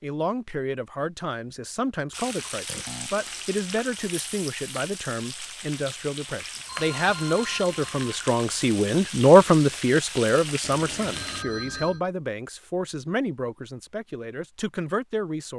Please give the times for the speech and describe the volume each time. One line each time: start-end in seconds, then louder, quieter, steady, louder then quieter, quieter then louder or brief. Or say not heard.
0.0-15.5 louder then quieter.